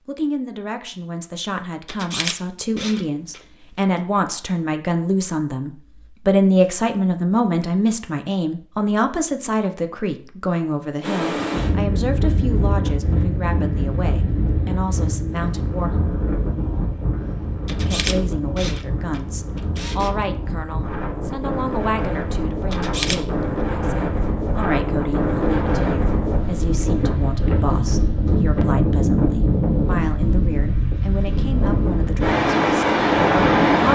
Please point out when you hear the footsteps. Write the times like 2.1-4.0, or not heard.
not heard.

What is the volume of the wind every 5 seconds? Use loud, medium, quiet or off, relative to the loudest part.
off, off, medium, medium, medium, loud, loud.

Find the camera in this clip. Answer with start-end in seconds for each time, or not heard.
1.9-3.8, 17.6-20.1, 22.7-23.2.